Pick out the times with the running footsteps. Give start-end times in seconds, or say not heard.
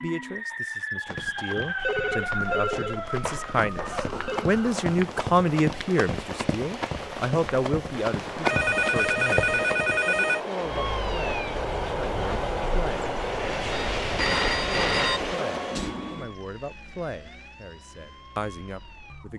1.1-10.0.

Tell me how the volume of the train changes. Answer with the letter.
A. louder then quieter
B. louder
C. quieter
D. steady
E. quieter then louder
B.